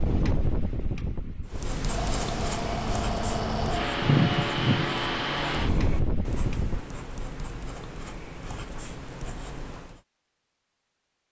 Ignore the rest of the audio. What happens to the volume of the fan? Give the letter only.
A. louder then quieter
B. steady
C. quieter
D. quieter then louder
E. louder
A.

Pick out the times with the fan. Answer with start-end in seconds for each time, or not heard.
0.0-6.8.